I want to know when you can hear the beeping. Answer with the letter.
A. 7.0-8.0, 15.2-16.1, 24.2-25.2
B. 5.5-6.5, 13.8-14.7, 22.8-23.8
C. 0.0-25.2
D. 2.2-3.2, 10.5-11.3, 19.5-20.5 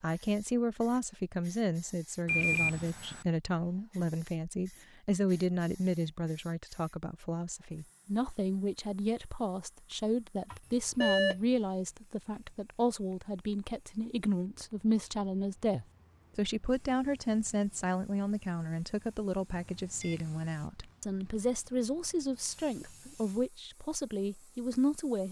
D.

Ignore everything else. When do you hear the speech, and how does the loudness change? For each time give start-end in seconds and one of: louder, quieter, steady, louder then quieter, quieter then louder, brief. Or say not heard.
0.0-25.2 steady.